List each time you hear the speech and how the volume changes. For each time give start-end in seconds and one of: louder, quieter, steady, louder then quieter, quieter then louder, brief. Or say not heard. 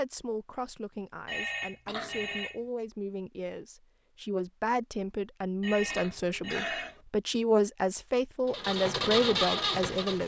0.0-10.2 louder.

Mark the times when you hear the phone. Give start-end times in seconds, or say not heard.
1.2-2.6, 5.6-7.0.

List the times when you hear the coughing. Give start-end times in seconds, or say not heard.
1.9-2.5, 5.8-7.0.